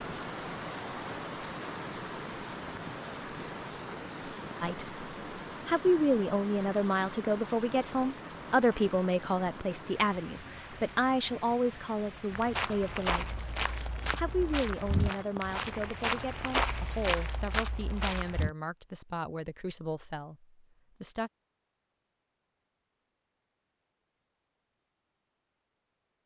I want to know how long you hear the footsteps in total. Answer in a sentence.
You can hear the footsteps for 6 seconds altogether.